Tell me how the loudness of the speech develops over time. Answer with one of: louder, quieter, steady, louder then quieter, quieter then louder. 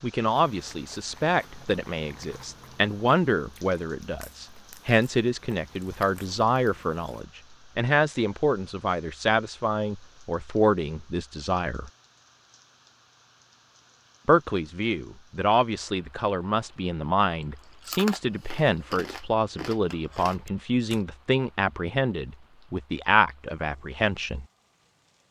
steady.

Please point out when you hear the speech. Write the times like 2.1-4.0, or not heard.
0.0-11.9, 14.2-24.4.